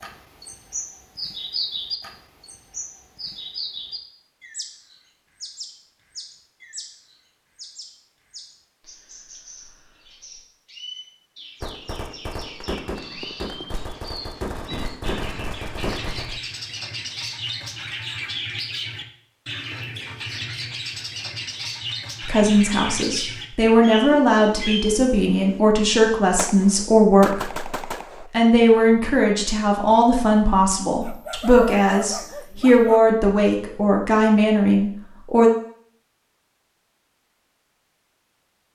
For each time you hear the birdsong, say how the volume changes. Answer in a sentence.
The birdsong can be heard from 0.0 to 25.6 s, getting quieter then louder.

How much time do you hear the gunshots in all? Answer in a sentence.
You can hear the gunshots for 7 seconds altogether.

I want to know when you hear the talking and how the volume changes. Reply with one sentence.
You can hear the talking from 22.2 to 35.5 s, at a steady volume.